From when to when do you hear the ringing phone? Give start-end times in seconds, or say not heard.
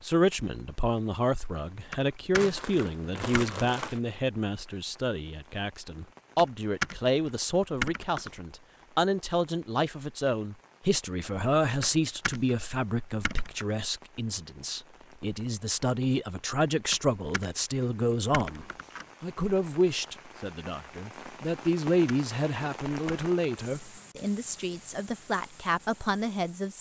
not heard.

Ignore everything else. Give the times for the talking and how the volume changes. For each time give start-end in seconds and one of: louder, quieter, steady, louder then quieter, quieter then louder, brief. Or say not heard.
0.0-26.7 steady.